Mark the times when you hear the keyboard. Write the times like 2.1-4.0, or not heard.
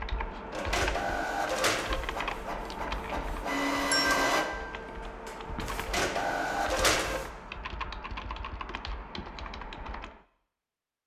0.0-10.2.